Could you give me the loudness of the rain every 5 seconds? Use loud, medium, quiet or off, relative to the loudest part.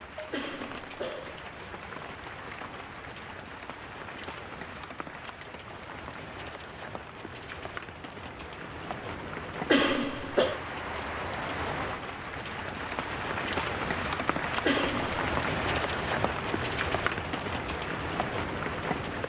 medium, medium, loud, loud.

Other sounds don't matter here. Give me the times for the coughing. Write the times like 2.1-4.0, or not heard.
0.3-1.4, 9.7-10.6, 14.7-15.2.